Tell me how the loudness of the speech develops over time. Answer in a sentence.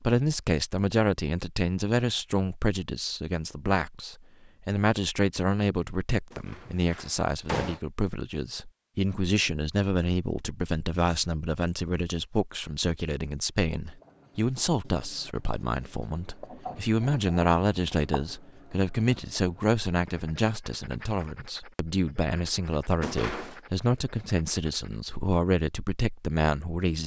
The volume of the speech stays about the same.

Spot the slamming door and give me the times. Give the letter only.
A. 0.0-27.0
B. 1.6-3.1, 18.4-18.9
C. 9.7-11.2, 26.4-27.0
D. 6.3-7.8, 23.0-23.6
D.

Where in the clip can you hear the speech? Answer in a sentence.
The speech can be heard from 0.0 to 27.0 s.